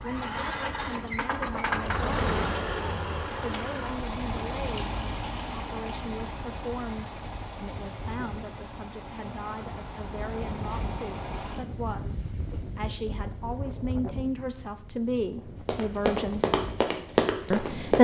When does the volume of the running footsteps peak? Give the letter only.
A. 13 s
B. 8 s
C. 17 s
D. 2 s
C.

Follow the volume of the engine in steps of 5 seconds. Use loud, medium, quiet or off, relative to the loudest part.
loud, medium, medium, off.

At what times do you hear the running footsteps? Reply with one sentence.
The running footsteps can be heard from 15.7 to 17.9 s.